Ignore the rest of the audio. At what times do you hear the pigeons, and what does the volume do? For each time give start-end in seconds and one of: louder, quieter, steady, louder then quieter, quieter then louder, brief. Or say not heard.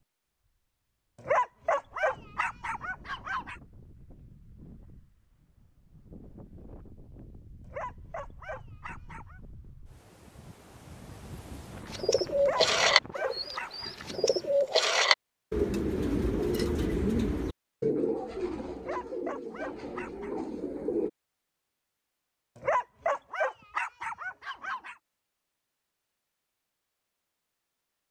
11.9-21.1 quieter.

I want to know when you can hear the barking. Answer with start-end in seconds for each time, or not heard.
1.2-3.5, 7.7-9.4, 12.3-13.9, 18.8-20.3, 22.6-24.9.